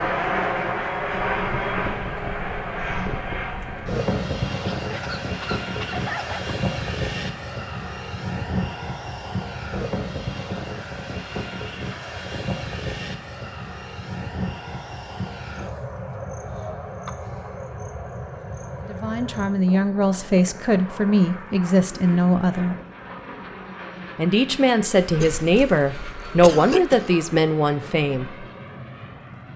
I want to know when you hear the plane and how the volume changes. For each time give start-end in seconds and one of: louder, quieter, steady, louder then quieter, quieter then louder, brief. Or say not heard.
0.0-29.5 quieter.